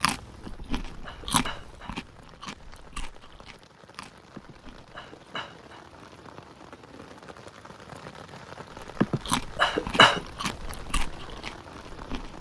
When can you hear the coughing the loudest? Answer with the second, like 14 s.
10 s.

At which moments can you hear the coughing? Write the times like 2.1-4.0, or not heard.
0.5-1.9, 4.3-5.8, 9.0-10.2.